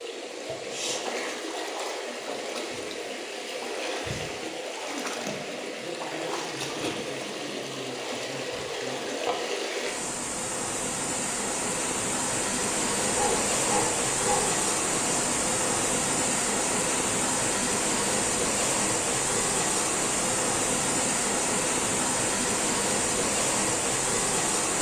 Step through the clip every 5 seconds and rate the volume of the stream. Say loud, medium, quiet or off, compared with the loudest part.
medium, medium, loud, loud, loud.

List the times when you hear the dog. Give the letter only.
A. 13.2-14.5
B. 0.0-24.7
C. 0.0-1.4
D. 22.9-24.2
A.